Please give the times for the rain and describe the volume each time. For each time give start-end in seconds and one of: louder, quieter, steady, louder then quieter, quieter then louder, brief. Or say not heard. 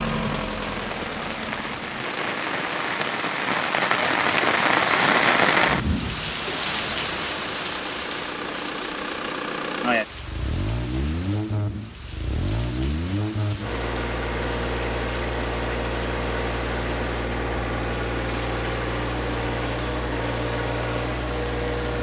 0.1-21.9 quieter.